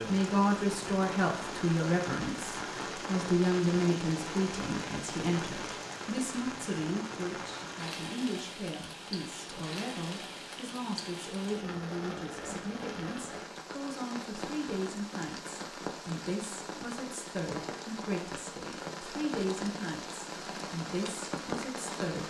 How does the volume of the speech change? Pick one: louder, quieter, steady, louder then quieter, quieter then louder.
quieter.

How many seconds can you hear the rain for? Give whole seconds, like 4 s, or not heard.
22 s.